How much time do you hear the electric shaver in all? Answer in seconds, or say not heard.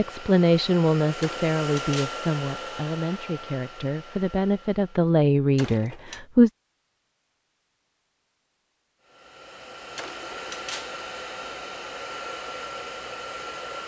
not heard.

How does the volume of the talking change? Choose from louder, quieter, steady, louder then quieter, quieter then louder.
quieter then louder.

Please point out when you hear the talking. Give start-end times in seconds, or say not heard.
0.0-6.5.